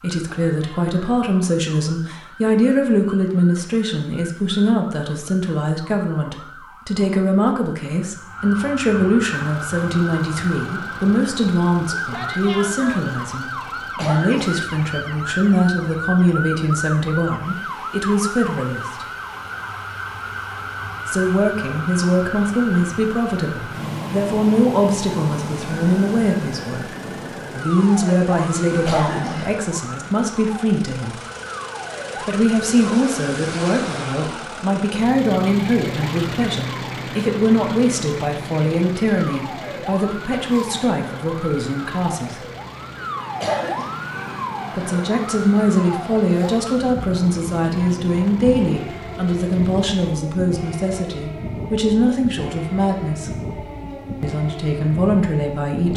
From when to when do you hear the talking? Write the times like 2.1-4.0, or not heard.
0.0-19.1, 21.1-26.9, 27.6-31.2, 32.2-42.5, 44.8-53.3, 54.2-55.9.